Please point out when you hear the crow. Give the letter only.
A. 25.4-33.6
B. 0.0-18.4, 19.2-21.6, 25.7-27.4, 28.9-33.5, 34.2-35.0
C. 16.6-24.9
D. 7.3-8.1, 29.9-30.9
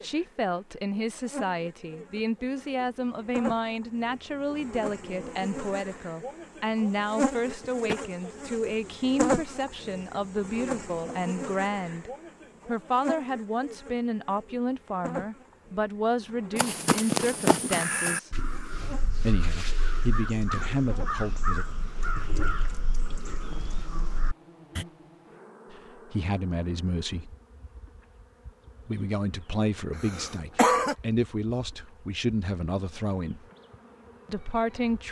C.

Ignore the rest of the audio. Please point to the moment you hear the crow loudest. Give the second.
17 s.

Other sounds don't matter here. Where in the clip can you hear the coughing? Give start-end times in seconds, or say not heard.
7.3-8.1, 29.9-30.9.